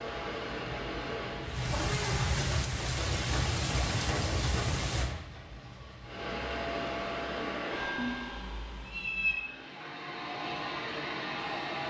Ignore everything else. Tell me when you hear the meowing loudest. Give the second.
9 s.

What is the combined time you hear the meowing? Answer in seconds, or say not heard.
2 s.